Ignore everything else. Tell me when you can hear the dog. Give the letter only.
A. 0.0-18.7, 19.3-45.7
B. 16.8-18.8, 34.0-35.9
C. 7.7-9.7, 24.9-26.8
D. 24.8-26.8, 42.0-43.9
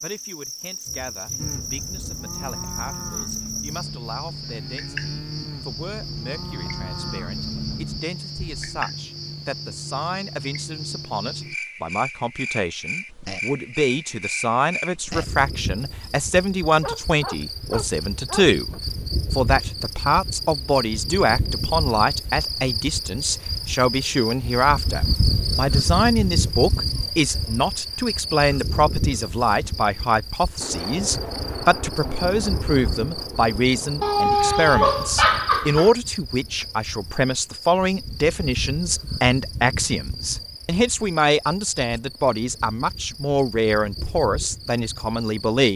B.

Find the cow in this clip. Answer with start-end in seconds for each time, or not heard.
1.4-8.7.